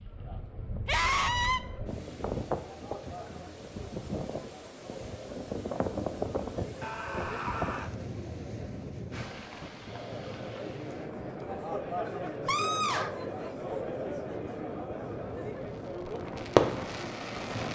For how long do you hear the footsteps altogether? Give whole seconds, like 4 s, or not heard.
not heard.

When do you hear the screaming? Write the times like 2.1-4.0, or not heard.
0.8-1.6, 6.8-7.9, 12.4-13.2.